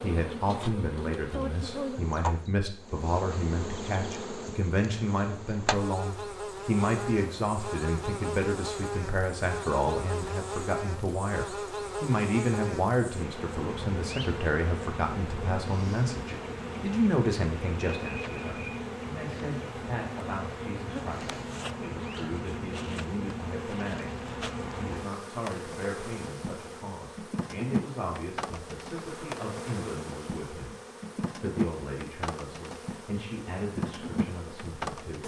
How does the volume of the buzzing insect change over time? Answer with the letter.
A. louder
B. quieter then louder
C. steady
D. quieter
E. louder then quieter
C.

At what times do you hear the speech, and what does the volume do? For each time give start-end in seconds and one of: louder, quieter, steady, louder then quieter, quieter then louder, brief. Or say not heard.
0.0-35.2 quieter.